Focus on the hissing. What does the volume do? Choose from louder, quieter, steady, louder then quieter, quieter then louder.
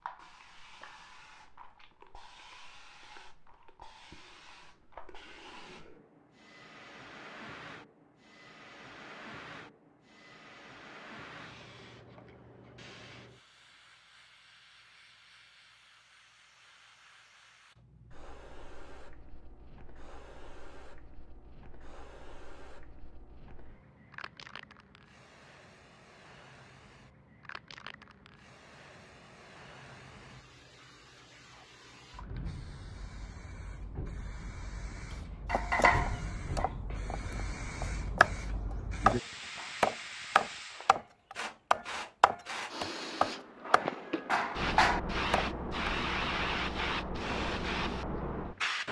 louder.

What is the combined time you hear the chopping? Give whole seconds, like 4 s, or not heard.
10 s.